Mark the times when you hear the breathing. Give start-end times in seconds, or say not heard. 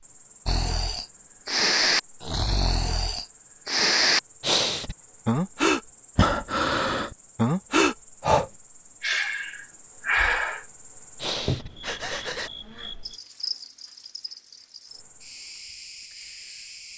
0.5-12.5.